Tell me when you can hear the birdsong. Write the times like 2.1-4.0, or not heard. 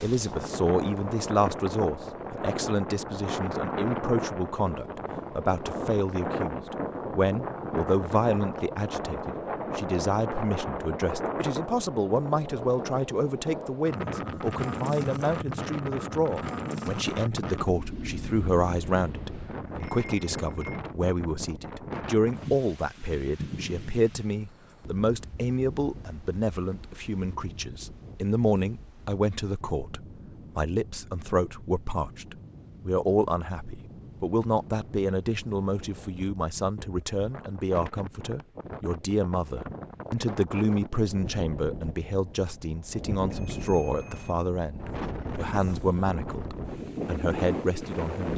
not heard.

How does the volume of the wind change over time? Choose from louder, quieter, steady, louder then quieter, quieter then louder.
quieter then louder.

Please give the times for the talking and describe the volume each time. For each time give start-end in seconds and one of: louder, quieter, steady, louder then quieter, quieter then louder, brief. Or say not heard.
0.0-48.3 steady.